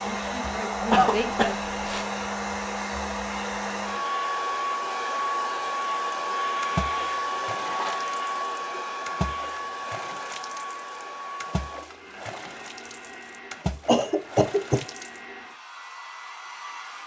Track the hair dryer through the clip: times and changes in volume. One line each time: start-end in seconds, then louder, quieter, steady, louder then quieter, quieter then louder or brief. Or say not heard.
0.0-17.0 quieter.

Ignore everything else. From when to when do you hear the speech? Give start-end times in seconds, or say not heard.
0.0-1.5.